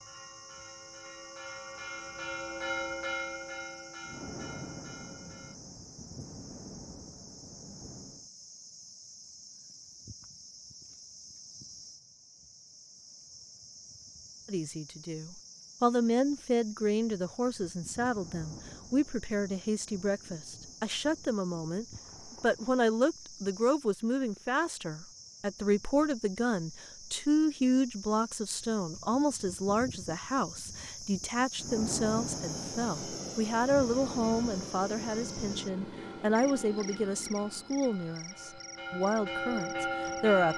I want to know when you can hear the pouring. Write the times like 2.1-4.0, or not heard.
not heard.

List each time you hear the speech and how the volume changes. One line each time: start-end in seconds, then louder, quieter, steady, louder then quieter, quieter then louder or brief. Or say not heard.
14.4-40.5 steady.